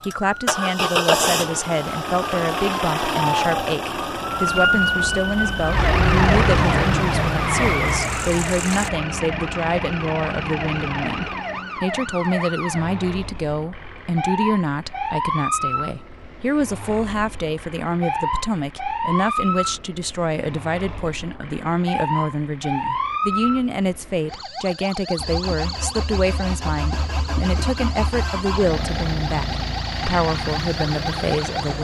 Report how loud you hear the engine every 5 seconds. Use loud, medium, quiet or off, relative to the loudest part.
loud, medium, off, off, off, medium, medium.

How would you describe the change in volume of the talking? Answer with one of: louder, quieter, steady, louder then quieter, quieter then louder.
steady.